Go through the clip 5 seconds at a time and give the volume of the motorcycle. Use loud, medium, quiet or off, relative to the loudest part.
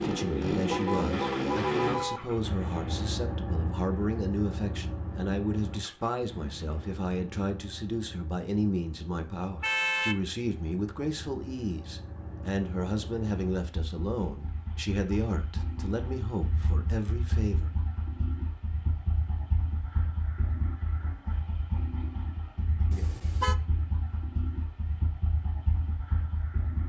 loud, quiet, quiet, medium, medium, medium.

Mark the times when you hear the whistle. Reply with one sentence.
The whistle can't be heard in this clip.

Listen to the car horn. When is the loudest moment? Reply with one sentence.
The loudest moment of the car horn is at 10 seconds.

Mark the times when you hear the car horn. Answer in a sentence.
The car horn can be heard from 0.7 to 2.2 s, from 9.6 to 10.2 s and from 22.9 to 23.6 s.